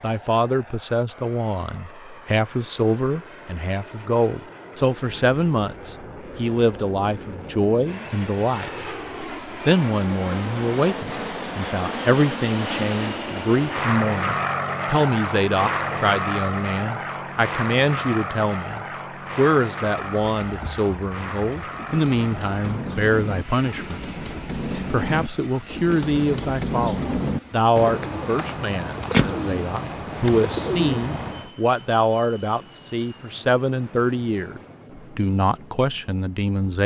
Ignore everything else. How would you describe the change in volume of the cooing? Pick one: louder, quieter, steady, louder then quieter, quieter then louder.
louder.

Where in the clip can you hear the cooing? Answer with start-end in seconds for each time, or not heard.
19.8-31.5.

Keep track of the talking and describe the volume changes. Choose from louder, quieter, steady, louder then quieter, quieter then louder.
steady.